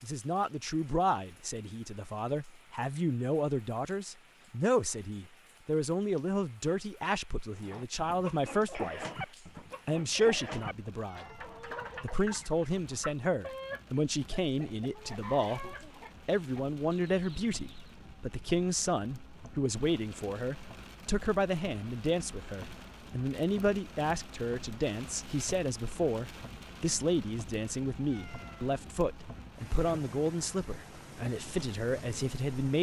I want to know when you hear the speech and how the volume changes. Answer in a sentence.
The speech can be heard from 0.0 to 9.1 s, at a steady volume; and from 9.8 to 32.7 s, at a steady volume.